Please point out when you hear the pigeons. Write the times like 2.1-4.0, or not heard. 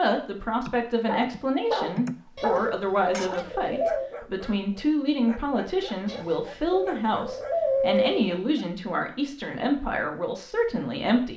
2.4-4.1, 6.0-8.3.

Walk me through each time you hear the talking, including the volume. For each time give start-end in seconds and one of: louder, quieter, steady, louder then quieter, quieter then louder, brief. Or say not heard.
0.0-11.3 steady.